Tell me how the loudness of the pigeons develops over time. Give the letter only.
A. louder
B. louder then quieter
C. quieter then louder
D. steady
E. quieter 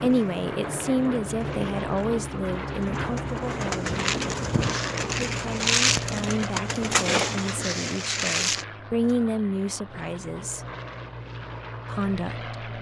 A.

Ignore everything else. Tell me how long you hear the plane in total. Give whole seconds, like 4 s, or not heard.
13 s.